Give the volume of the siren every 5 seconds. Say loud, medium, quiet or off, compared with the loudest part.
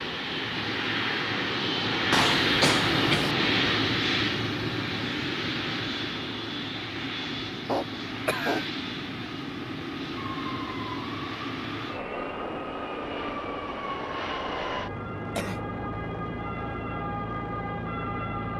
off, off, loud, loud.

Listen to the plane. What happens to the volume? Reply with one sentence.
The volume of the plane goes down.